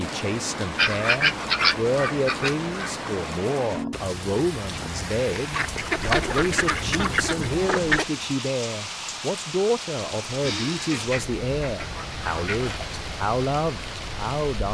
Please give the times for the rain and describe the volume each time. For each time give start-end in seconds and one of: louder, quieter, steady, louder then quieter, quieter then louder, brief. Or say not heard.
0.0-14.6 steady.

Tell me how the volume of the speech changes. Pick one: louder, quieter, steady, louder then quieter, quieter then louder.
steady.